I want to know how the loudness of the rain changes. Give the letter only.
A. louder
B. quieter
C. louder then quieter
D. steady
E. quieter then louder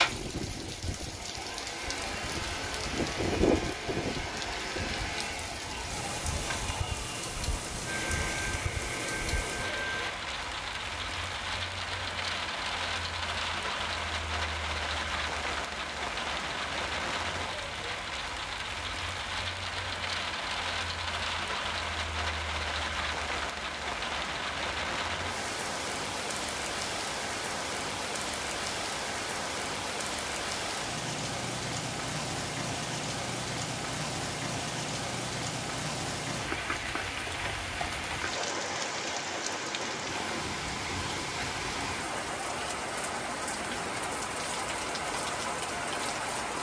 D.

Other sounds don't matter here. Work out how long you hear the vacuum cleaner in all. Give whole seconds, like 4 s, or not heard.
10 s.